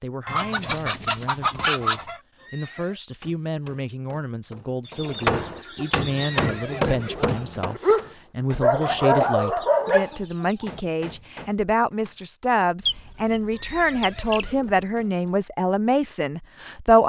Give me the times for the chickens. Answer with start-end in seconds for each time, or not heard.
0.2-2.2, 4.8-6.3, 8.8-10.8, 12.8-14.6.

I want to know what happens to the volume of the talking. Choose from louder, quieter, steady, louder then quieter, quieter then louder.
louder.